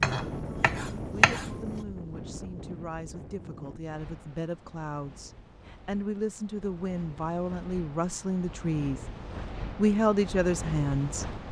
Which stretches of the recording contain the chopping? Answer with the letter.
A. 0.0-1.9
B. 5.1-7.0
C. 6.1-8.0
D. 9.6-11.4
A.